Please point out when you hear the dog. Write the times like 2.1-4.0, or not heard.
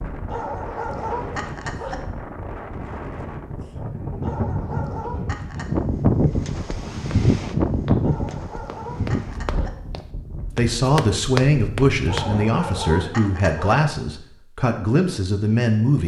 0.2-2.0, 4.2-5.7, 8.0-9.8, 12.1-13.8.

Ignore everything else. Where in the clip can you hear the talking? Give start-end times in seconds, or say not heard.
10.6-16.0.